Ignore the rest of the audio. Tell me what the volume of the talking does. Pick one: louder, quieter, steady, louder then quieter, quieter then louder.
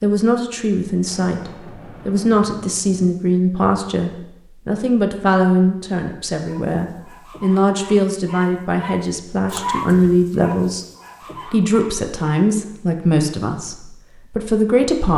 steady.